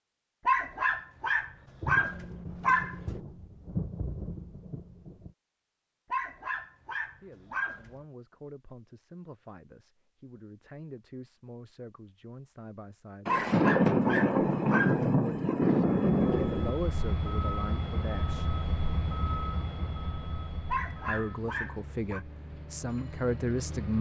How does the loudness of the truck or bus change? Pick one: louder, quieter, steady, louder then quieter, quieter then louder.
quieter.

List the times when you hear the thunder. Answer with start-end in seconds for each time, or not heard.
1.8-5.3, 13.2-16.8.